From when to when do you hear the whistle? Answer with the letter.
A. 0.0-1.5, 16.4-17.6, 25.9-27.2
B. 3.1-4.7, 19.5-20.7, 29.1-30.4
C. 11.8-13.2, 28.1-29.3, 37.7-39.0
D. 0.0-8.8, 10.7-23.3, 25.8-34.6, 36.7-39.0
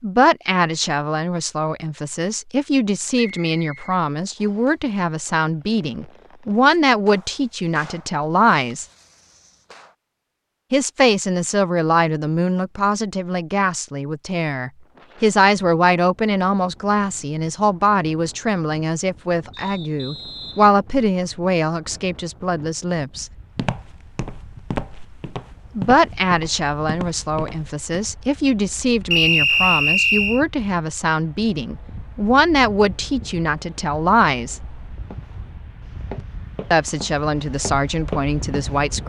B.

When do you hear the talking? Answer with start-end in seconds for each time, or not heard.
0.0-8.8, 10.7-23.3, 25.8-34.6, 36.7-39.0.